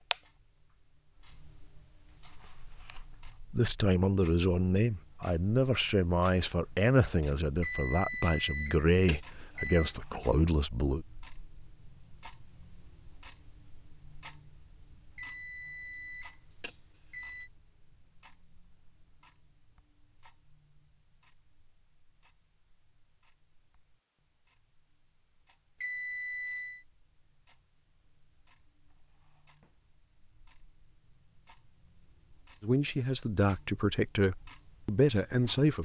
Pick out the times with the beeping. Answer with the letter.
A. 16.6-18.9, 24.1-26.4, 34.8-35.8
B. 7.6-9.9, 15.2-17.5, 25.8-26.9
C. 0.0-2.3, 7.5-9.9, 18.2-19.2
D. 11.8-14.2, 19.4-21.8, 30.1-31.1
B.